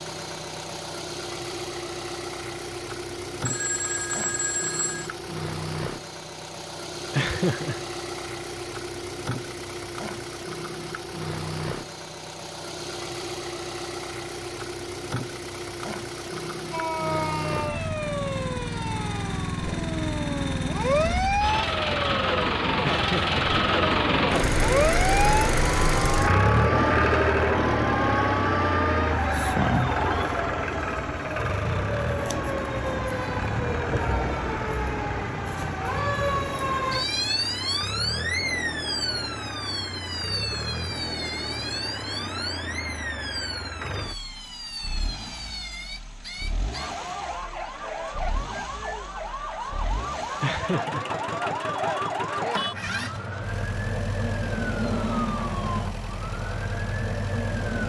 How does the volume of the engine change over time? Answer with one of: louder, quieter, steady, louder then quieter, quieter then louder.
louder then quieter.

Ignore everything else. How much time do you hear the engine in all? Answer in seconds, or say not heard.
58 s.